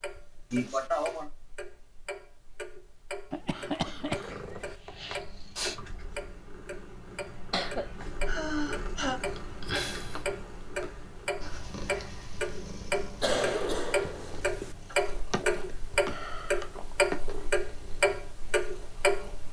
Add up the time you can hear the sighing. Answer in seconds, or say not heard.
4 s.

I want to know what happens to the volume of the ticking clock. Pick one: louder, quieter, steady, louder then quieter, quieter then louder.
louder.